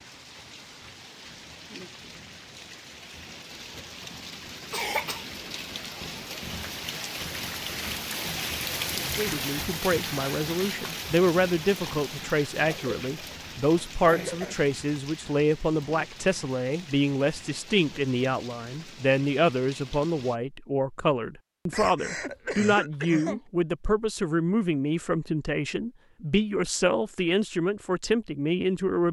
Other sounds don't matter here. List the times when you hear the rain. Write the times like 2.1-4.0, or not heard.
0.0-20.4.